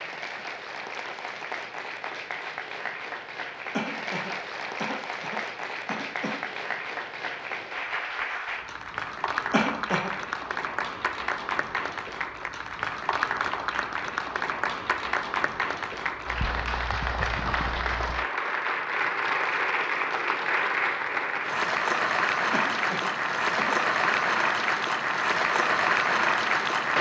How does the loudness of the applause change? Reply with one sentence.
The volume of the applause goes up.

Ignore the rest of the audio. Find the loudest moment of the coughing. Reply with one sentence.
The loudest moment of the coughing is at 10 seconds.